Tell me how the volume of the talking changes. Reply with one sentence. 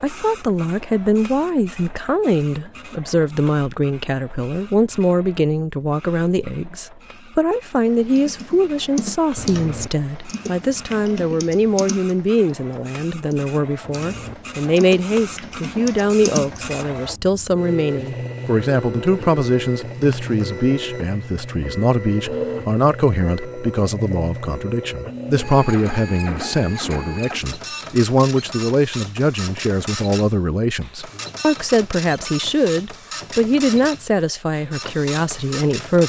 The volume of the talking stays about the same.